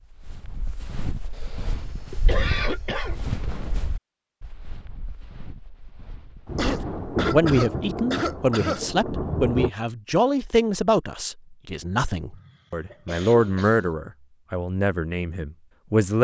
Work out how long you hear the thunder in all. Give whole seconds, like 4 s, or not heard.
3 s.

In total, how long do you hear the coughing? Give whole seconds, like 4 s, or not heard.
6 s.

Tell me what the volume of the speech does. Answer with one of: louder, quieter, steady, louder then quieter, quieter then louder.
quieter.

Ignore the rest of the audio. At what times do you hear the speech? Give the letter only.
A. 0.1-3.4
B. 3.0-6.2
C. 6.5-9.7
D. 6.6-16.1
D.